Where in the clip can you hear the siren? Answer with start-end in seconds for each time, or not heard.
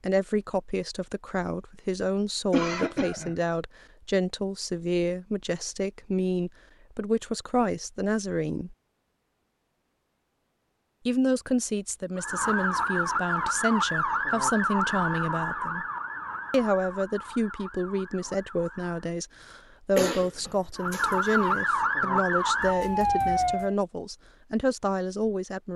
12.2-19.0, 20.8-23.8.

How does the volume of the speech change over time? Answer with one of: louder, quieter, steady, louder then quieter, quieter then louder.
steady.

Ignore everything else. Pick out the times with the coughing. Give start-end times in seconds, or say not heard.
2.5-3.4, 19.9-21.6.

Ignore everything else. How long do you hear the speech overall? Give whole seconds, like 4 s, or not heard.
23 s.